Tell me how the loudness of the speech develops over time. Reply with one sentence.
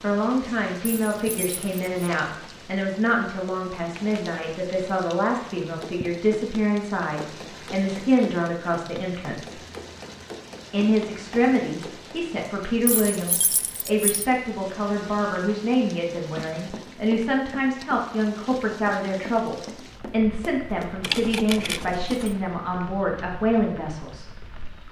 The loudness of the speech stays about the same.